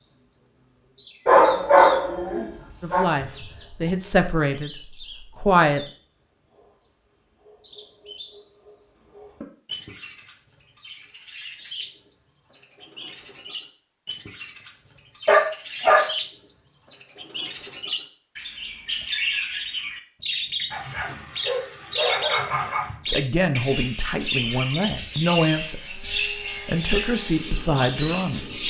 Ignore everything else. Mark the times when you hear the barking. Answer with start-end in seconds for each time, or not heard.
1.2-3.0, 15.2-16.1, 20.7-22.9.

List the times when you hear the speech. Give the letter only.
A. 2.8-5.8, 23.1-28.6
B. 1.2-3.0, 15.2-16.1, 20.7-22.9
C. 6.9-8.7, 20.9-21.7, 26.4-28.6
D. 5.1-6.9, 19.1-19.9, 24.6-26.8
A.